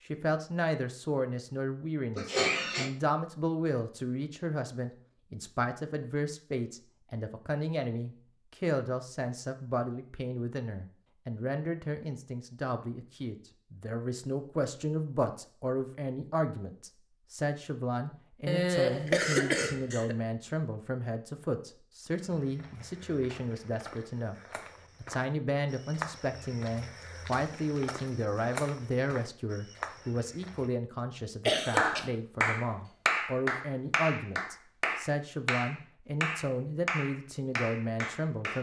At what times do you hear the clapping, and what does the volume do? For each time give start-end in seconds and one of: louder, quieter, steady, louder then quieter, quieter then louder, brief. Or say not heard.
31.8-38.5 quieter.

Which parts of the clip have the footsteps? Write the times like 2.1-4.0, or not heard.
22.1-30.7.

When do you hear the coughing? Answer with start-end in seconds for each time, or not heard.
2.1-2.9, 18.4-20.1, 31.4-32.0.